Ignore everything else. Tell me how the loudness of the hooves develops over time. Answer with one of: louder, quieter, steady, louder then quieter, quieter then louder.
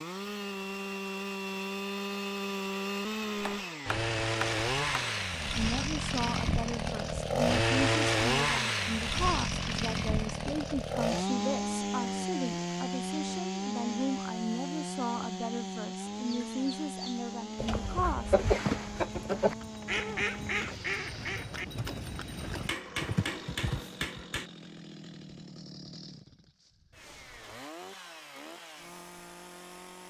louder.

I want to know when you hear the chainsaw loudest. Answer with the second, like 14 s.
8 s.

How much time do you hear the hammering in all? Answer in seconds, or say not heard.
4 s.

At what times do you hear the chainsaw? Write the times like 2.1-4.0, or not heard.
0.0-30.0.